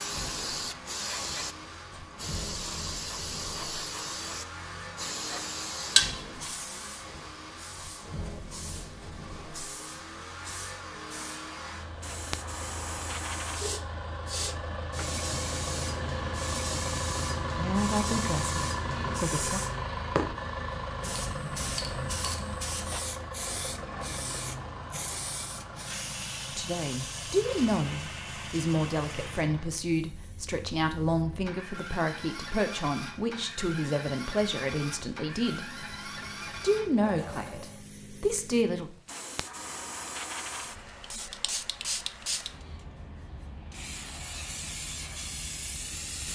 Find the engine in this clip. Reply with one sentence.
The engine can be heard from 0.0 to 37.9 s.